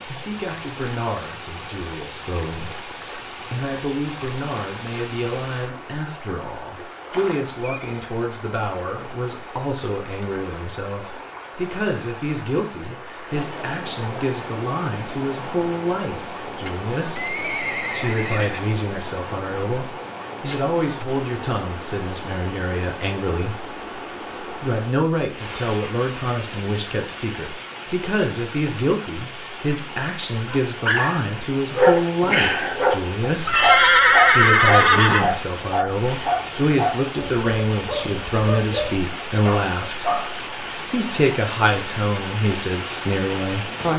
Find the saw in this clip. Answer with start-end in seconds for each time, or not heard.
not heard.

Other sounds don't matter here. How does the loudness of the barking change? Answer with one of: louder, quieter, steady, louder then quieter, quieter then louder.
quieter.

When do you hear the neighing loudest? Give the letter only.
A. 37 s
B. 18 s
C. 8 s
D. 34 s
D.